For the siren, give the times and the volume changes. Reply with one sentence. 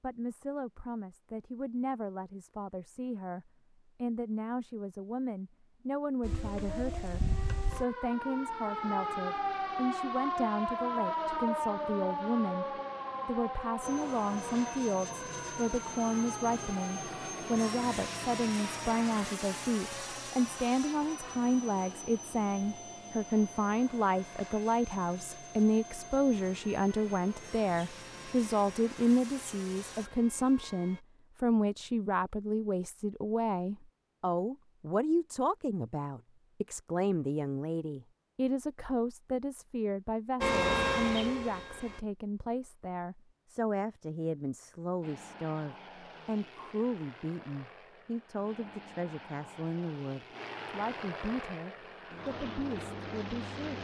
The siren can be heard from 6.2 to 31.1 s, getting quieter; and briefly from 40.4 to 42.0 s.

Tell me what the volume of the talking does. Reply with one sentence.
The loudness of the talking goes up, then down.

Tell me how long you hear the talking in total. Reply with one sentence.
The talking can be heard for 53 seconds in total.